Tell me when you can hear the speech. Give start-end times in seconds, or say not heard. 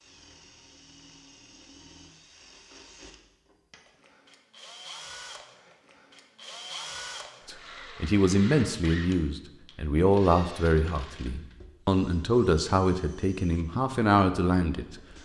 7.5-15.0.